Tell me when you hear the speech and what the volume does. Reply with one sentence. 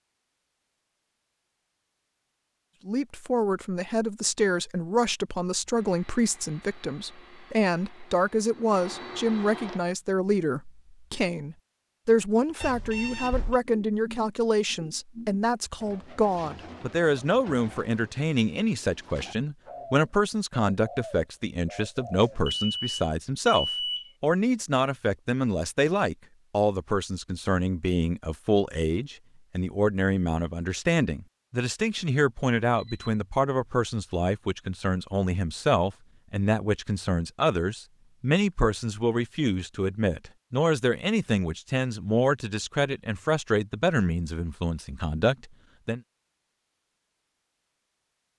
The speech can be heard from 2.9 to 46.0 s, at a steady volume.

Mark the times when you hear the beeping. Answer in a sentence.
The beeping can be heard from 12.6 to 13.6 s, from 22.2 to 24.1 s and from 32.8 to 33.2 s.